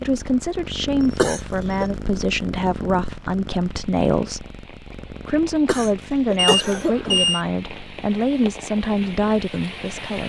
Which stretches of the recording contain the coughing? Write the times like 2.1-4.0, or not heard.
1.1-1.9, 5.7-7.2.